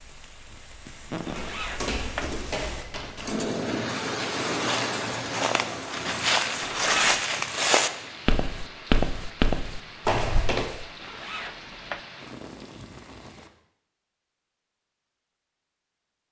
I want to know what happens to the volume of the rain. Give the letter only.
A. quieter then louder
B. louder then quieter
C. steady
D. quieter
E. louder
B.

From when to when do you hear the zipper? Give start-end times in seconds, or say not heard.
1.2-2.3, 6.6-7.2, 11.0-12.0.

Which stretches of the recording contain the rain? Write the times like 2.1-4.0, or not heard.
0.0-13.5.